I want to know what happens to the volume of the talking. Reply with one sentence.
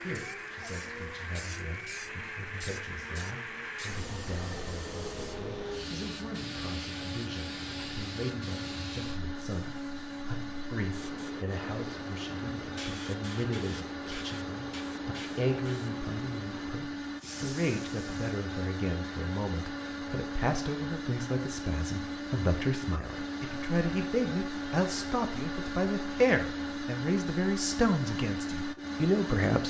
The loudness of the talking goes up.